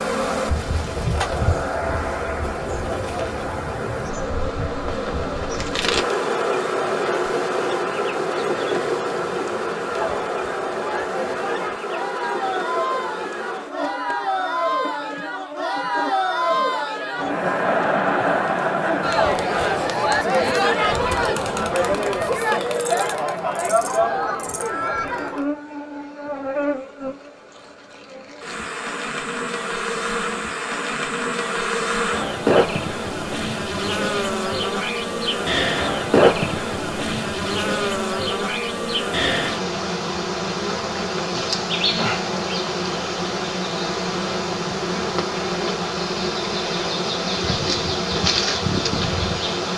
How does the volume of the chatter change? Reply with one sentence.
The loudness of the chatter goes up.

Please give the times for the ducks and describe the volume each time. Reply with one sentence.
The ducks can't be heard in this clip.